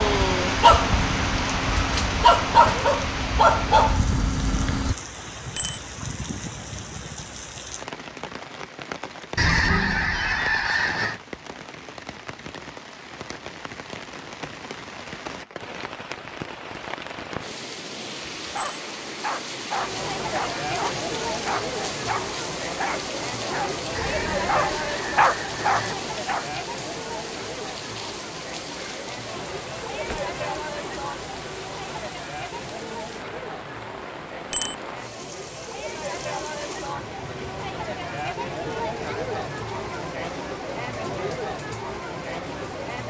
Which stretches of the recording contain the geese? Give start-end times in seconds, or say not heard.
9.3-11.2, 23.9-25.9.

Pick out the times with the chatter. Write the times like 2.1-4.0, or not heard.
19.8-43.0.